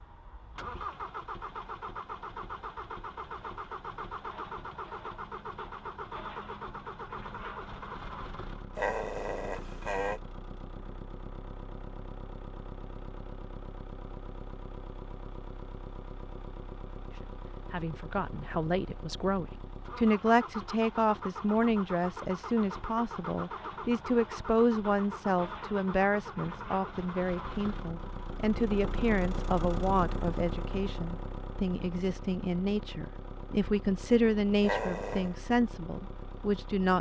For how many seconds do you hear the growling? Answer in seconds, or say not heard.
2 s.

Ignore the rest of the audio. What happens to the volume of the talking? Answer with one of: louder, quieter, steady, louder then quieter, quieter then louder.
steady.